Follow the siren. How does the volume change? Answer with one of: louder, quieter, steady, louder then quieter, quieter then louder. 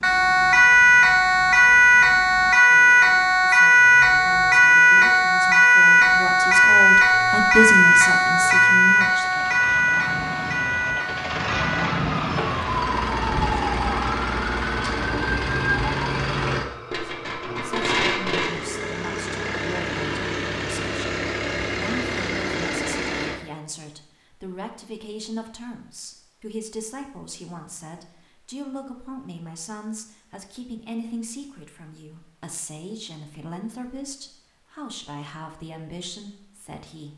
quieter.